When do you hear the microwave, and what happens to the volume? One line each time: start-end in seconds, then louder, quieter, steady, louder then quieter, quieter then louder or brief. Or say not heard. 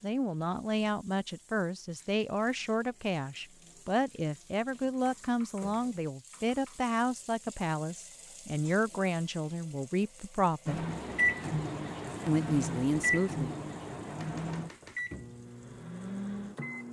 10.7-16.8 quieter.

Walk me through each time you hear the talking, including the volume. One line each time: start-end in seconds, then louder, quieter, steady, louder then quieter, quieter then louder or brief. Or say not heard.
0.0-10.8 steady
12.2-13.6 brief.